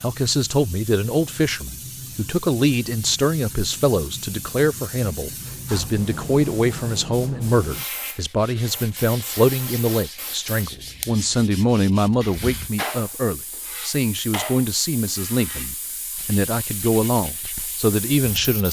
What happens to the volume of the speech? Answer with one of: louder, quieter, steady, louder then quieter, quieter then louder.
steady.